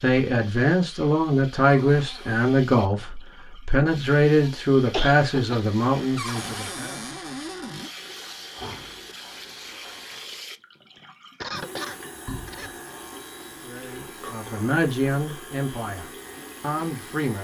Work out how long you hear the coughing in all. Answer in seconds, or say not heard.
3 s.